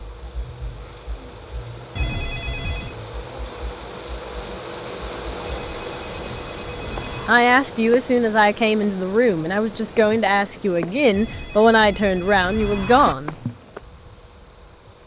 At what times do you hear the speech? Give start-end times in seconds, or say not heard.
7.2-13.3.